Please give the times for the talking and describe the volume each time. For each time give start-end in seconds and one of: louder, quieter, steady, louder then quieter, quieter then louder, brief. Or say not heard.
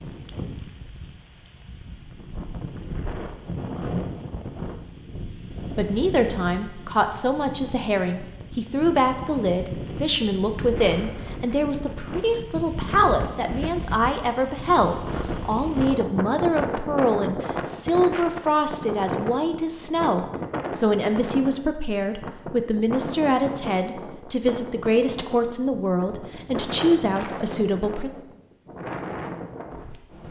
5.8-28.1 steady.